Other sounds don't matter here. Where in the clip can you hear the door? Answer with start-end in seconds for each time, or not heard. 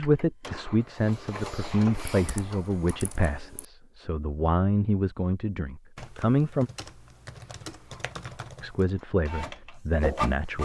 not heard.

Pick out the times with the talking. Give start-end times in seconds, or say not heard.
0.0-6.7, 8.6-10.6.